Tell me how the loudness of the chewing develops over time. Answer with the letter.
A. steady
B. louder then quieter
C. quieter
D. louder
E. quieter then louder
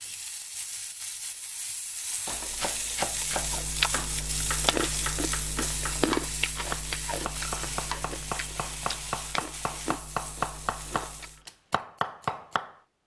C.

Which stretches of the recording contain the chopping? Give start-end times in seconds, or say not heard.
2.2-12.8.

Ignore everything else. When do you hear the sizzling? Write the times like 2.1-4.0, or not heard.
0.0-11.4.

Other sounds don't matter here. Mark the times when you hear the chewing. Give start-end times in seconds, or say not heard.
3.0-11.4.